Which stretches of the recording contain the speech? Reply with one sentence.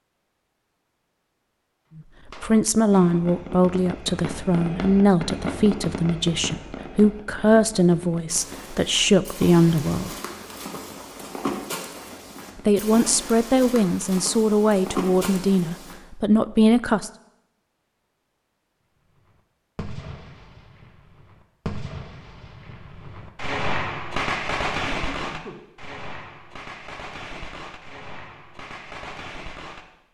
You can hear the speech from 2.4 to 10.1 s and from 12.7 to 17.1 s.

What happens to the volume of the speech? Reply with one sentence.
The volume of the speech stays about the same.